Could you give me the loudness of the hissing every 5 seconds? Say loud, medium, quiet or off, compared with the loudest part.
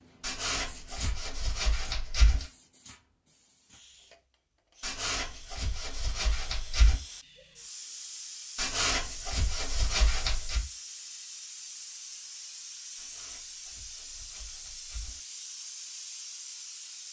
medium, loud, loud, loud.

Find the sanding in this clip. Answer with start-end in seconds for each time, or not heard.
0.2-2.5, 4.8-7.0, 8.6-10.7, 12.9-15.2.